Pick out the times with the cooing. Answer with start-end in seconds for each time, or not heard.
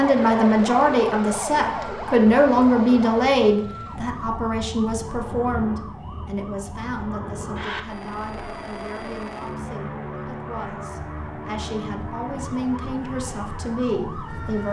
not heard.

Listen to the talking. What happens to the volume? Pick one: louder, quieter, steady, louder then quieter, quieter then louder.
quieter then louder.